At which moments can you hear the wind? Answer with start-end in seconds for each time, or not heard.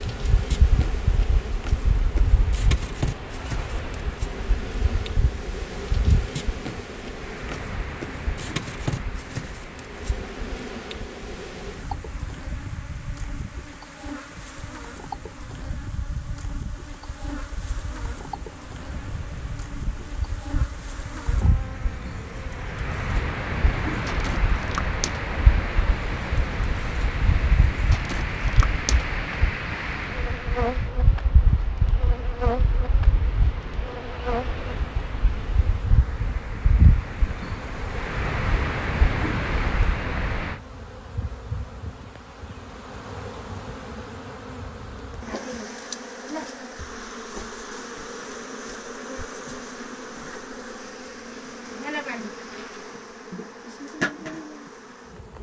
0.0-40.6.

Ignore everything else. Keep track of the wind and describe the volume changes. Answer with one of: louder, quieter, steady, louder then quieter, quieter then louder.
quieter then louder.